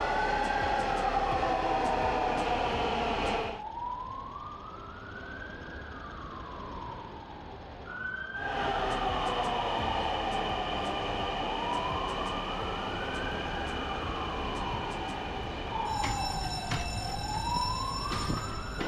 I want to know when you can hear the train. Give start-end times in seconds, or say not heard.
0.0-3.6, 8.3-18.8.